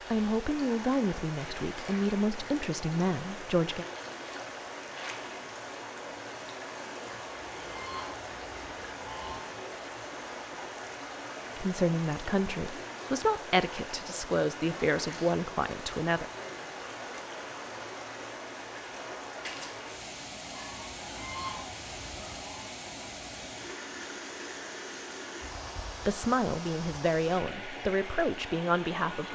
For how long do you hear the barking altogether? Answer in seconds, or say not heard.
not heard.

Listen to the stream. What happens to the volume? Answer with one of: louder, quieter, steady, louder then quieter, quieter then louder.
steady.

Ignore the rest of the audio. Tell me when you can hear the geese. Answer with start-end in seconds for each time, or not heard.
7.0-9.4, 20.5-22.6.